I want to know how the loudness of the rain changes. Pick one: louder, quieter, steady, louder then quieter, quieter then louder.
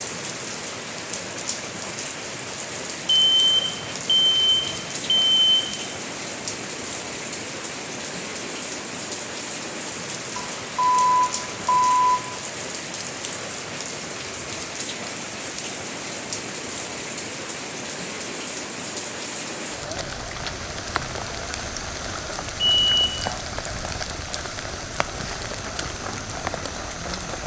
steady.